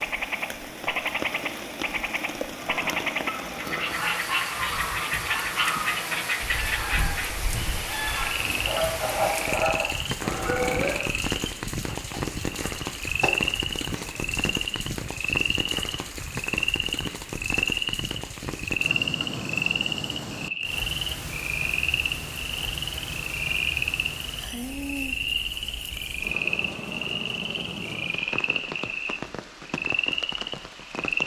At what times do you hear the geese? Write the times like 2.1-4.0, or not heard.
2.6-11.1.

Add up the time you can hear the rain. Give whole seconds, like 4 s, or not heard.
31 s.